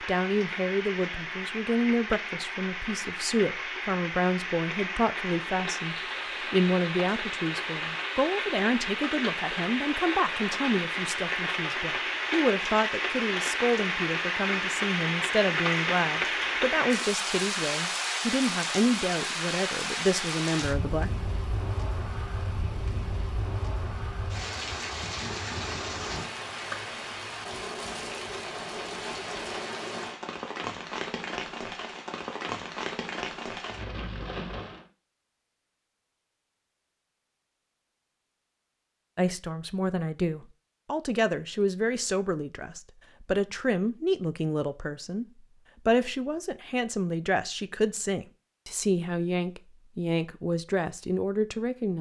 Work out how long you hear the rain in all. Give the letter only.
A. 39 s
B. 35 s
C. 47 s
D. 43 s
B.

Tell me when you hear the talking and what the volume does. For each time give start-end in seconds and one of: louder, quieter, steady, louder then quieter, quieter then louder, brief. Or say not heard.
0.0-21.1 steady
39.1-51.9 steady.